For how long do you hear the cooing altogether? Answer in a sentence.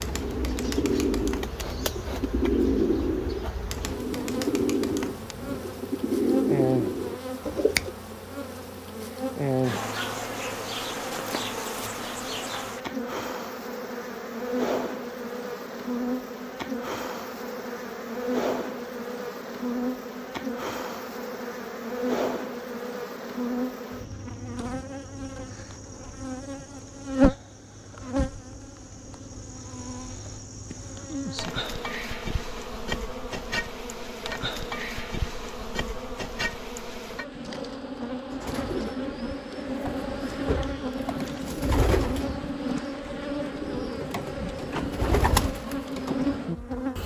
The cooing can be heard for 16 seconds in total.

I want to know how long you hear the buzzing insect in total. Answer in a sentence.
The buzzing insect can be heard for 47 seconds in total.